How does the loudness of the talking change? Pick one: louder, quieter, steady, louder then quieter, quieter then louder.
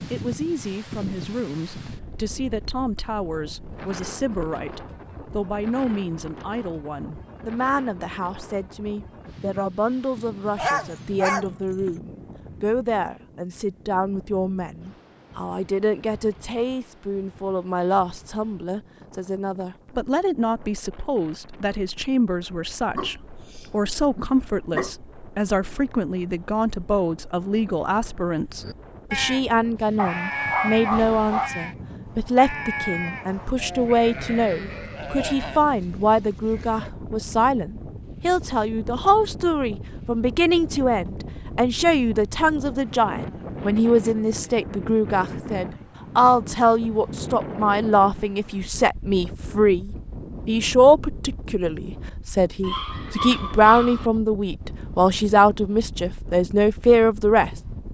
louder.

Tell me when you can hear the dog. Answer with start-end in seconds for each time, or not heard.
10.6-12.0, 22.9-24.9, 29.9-31.5, 52.6-54.1.